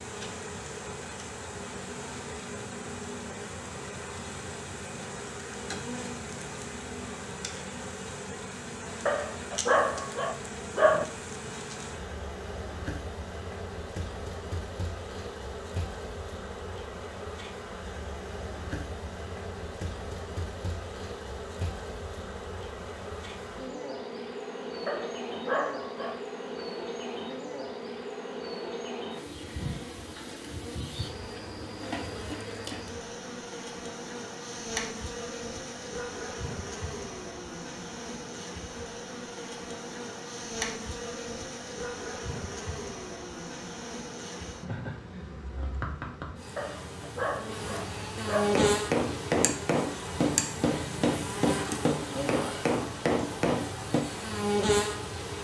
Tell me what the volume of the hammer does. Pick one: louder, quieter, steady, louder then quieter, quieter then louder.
steady.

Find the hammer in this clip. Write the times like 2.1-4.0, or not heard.
48.5-54.0.